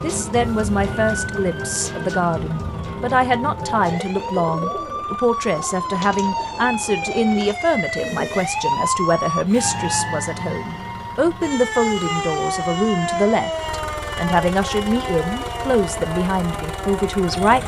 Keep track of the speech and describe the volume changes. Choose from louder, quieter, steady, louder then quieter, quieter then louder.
steady.